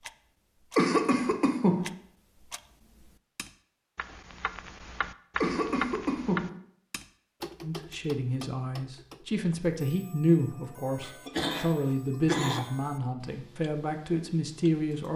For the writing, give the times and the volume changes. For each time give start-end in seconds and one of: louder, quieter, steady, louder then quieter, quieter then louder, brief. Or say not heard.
not heard.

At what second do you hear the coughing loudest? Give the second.
1 s.